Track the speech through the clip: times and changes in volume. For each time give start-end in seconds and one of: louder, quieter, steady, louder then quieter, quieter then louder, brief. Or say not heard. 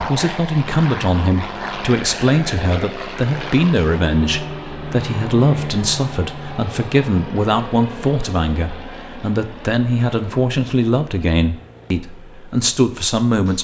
0.0-13.6 steady.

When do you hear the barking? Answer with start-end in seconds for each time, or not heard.
not heard.